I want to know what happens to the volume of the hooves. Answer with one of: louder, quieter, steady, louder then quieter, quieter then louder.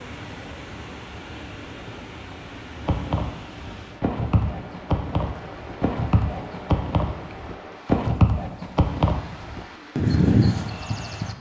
louder.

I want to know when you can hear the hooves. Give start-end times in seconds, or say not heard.
2.8-11.3.